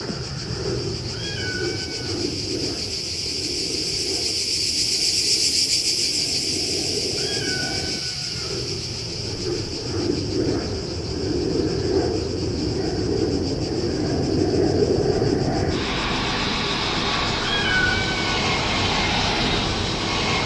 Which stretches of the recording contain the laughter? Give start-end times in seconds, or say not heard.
not heard.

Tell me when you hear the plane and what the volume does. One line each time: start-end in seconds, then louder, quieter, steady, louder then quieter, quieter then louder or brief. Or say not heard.
0.0-20.4 louder.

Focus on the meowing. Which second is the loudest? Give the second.
18 s.